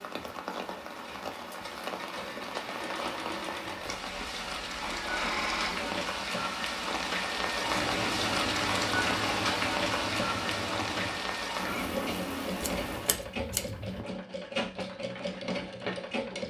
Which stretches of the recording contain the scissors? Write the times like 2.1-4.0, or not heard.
12.6-14.1.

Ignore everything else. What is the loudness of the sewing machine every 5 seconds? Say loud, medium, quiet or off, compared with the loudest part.
medium, loud, loud, loud.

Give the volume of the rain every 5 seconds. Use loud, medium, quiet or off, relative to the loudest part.
medium, loud, loud, off.